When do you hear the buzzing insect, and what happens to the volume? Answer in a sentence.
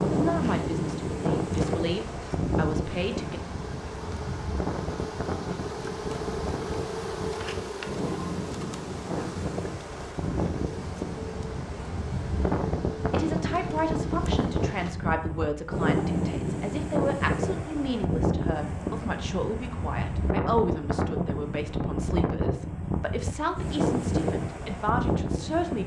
You can hear the buzzing insect from 0.0 to 14.9 s, getting louder then quieter.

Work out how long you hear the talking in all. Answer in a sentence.
The talking can be heard for 16 seconds in total.